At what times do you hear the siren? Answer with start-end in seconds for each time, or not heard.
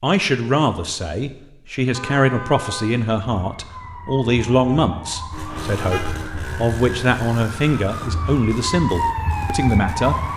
3.2-10.3.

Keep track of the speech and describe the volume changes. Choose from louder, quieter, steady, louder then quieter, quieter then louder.
steady.